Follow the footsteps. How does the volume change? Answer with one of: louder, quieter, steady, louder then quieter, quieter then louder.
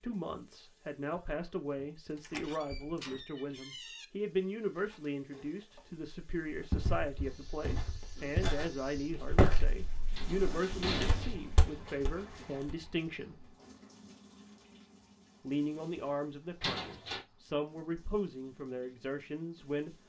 louder then quieter.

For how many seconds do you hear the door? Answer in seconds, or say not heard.
4 s.